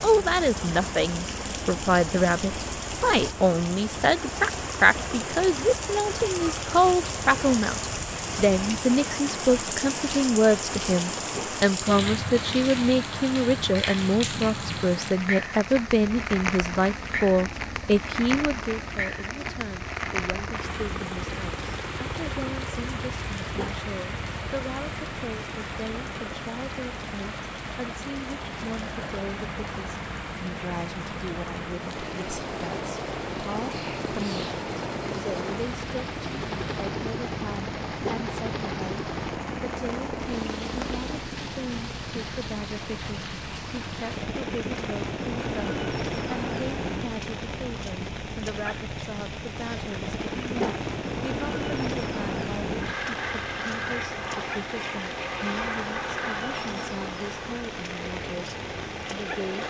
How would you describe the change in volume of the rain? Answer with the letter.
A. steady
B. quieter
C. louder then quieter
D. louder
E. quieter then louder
B.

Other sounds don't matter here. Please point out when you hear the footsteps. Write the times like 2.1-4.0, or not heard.
not heard.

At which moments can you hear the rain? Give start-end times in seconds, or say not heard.
0.0-59.6.